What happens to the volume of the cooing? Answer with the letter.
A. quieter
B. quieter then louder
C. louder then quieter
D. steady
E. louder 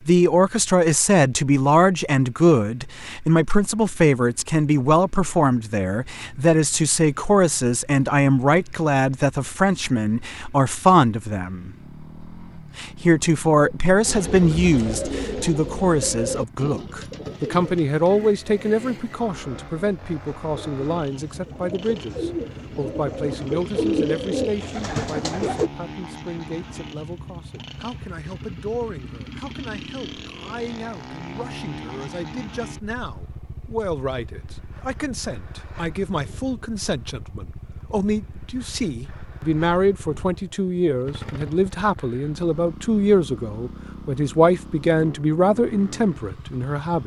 B.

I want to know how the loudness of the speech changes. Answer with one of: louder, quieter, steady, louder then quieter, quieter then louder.
quieter then louder.